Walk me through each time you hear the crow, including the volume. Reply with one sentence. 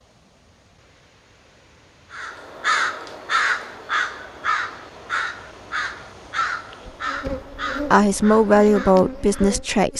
You can hear the crow from 2.1 to 9.6 s, getting quieter.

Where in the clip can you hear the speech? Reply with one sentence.
You can hear the speech from 7.8 to 9.9 s.